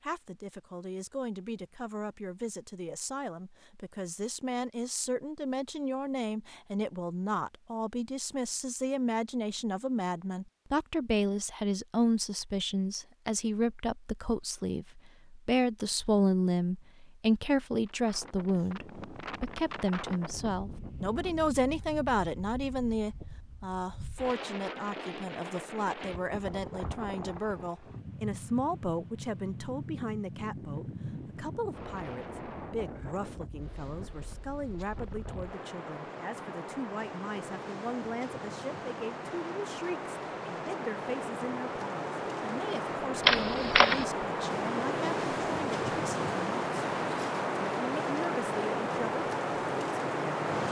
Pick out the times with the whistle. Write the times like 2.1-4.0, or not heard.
not heard.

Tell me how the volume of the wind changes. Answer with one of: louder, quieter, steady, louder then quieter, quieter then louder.
louder.